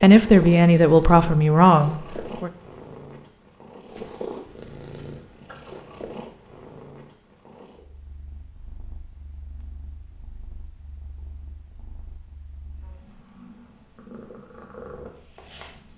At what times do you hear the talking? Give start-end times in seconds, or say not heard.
0.0-2.5.